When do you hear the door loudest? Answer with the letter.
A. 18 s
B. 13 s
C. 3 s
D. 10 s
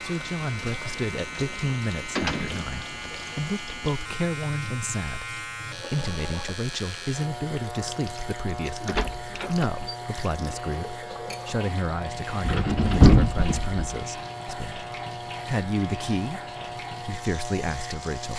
B.